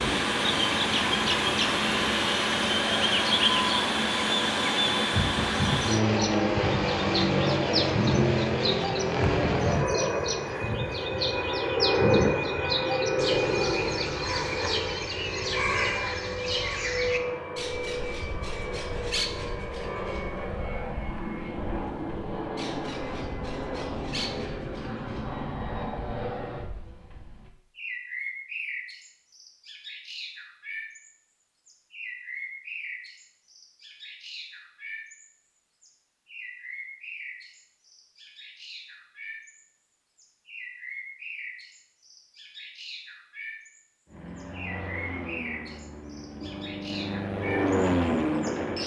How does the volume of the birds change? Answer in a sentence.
The loudness of the birds goes down.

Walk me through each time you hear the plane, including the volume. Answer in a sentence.
The plane can be heard from 0.0 to 26.7 s, getting quieter; and from 44.0 to 48.8 s, getting louder.